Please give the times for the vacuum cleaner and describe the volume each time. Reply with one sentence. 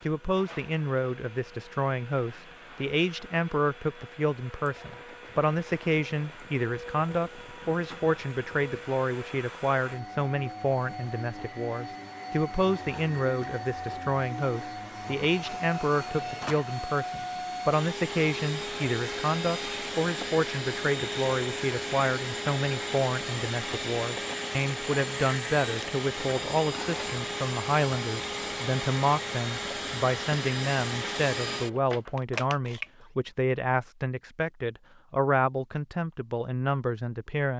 You can hear the vacuum cleaner from 0.0 to 33.0 s, getting louder.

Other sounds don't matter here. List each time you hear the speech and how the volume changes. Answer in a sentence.
You can hear the speech from 0.1 to 37.5 s, at a steady volume.